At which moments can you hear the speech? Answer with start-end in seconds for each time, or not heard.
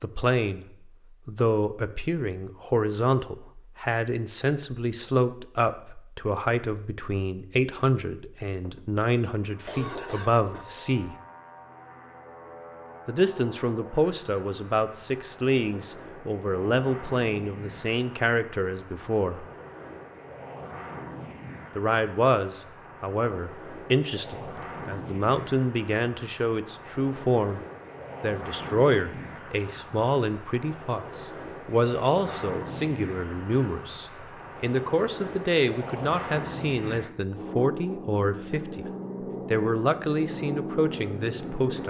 0.0-0.7, 1.2-11.2, 13.1-19.4, 21.8-27.6, 28.2-38.9, 39.5-41.8.